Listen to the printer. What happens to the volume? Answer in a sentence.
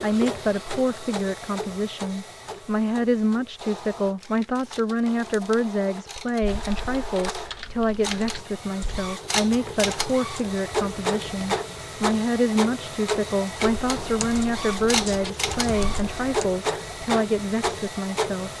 The volume of the printer goes up.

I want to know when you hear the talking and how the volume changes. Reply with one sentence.
The talking can be heard from 0.0 to 18.5 s, at a steady volume.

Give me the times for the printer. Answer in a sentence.
You can hear the printer from 0.0 to 18.5 s.